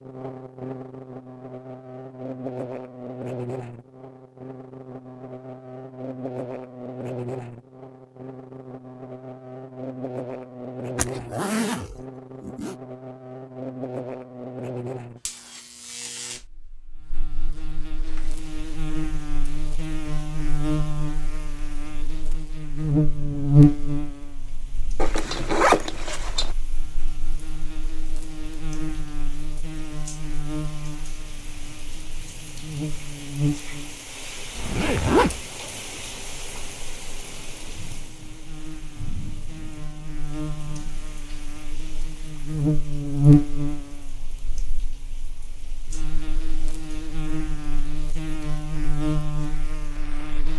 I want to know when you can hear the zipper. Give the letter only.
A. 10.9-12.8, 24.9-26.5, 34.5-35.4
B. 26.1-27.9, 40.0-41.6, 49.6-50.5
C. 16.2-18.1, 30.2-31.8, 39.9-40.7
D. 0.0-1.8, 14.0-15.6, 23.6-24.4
A.